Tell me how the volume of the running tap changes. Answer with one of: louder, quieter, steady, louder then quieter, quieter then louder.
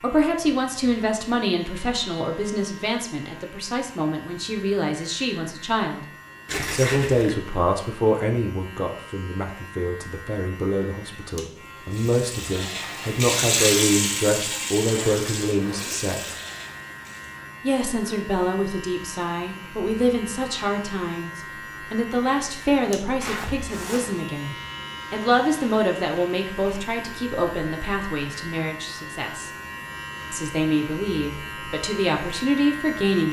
louder then quieter.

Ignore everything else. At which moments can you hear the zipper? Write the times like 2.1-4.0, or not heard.
6.5-7.4, 14.8-16.0, 23.2-24.2.